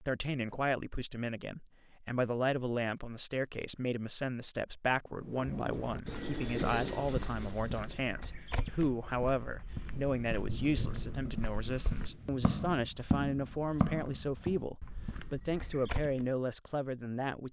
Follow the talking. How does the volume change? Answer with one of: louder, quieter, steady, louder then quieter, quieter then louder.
steady.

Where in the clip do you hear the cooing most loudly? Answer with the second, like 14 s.
7 s.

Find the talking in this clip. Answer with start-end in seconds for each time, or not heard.
0.0-17.4.